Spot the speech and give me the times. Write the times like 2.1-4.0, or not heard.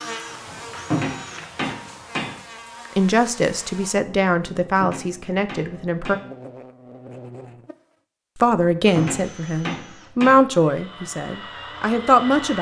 3.0-6.2, 8.3-12.5.